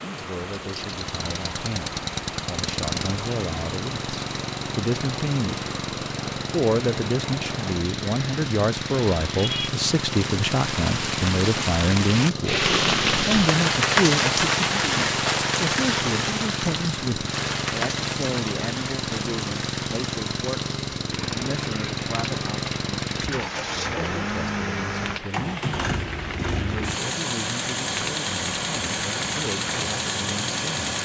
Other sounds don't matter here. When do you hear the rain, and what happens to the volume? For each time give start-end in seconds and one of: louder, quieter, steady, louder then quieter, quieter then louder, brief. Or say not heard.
0.0-31.0 louder then quieter.